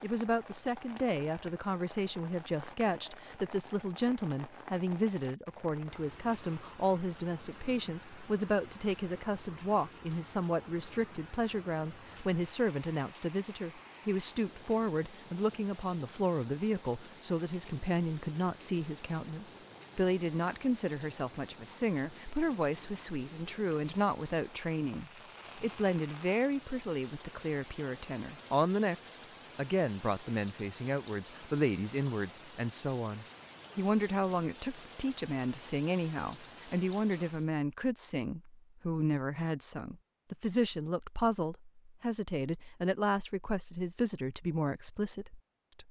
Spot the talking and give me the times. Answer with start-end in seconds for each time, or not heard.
0.0-45.8.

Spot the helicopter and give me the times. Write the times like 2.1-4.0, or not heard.
not heard.